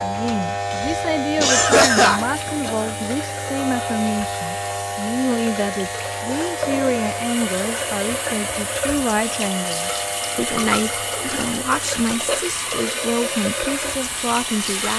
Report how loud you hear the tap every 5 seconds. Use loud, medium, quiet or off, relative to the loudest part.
medium, loud, loud.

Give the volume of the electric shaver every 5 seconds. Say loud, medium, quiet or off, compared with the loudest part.
loud, loud, medium.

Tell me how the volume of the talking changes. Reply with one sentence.
The volume of the talking stays about the same.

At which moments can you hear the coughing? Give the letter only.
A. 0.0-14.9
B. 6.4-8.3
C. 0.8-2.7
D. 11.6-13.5
C.